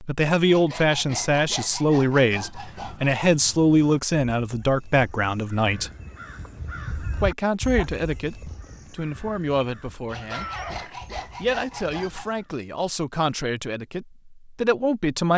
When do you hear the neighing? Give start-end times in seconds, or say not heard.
10.3-10.9.